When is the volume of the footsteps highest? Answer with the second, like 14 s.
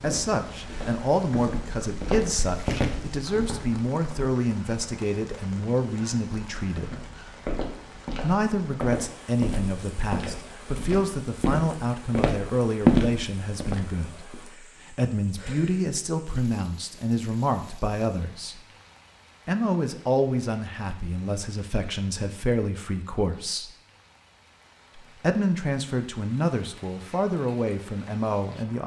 13 s.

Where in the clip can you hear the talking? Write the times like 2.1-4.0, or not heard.
0.0-7.0, 8.2-18.6, 19.4-23.7, 24.9-28.8.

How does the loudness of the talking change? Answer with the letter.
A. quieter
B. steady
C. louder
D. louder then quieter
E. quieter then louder
B.